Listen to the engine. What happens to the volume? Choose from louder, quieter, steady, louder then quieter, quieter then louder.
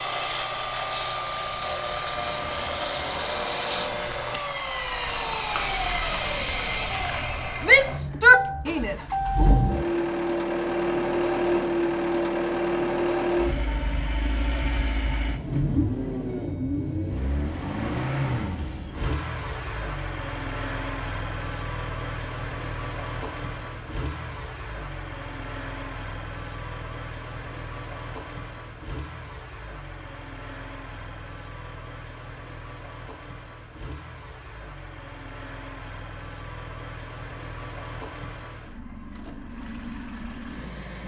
quieter.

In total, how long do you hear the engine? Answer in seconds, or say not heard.
41 s.